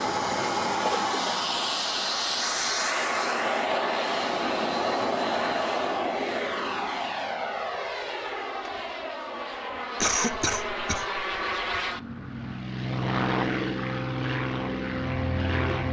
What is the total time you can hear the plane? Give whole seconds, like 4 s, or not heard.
16 s.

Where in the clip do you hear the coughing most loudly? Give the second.
10 s.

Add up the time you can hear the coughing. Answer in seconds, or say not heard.
2 s.